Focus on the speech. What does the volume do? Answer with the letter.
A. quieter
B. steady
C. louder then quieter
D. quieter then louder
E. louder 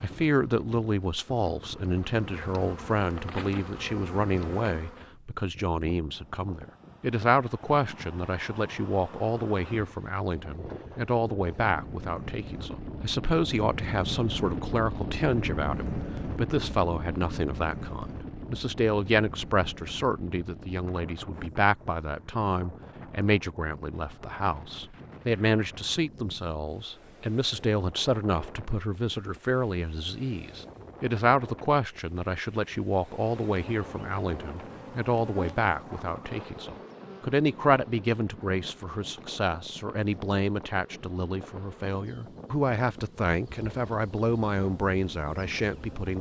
B.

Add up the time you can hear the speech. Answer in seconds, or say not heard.
46 s.